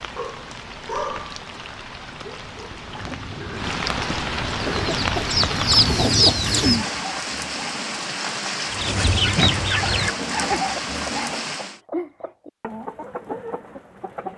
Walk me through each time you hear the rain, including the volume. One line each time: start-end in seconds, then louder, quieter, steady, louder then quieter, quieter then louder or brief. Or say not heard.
0.0-11.8 louder.